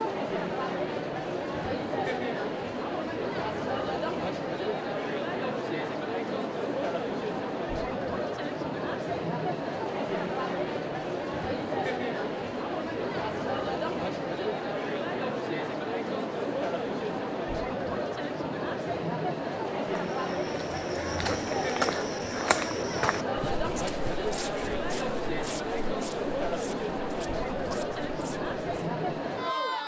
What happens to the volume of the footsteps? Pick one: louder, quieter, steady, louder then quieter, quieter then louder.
quieter.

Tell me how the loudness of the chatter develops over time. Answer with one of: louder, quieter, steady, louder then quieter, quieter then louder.
steady.